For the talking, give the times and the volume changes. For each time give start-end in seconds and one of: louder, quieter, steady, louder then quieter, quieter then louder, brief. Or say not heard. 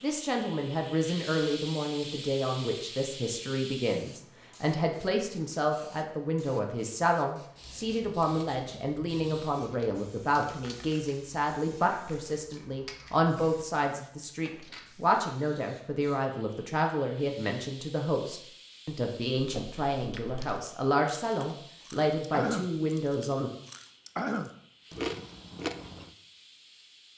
0.0-23.5 steady.